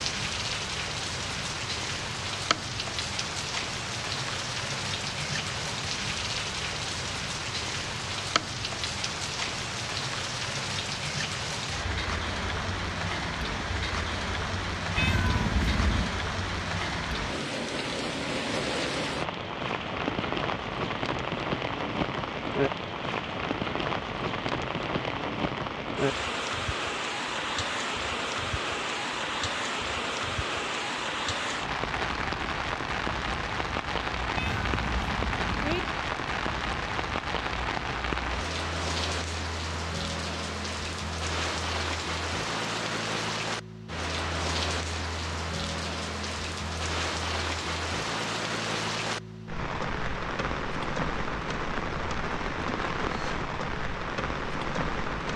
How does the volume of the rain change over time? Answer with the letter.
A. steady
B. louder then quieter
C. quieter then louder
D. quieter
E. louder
A.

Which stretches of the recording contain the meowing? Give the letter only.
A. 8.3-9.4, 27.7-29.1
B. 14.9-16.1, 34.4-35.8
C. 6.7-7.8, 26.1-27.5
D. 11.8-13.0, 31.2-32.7
B.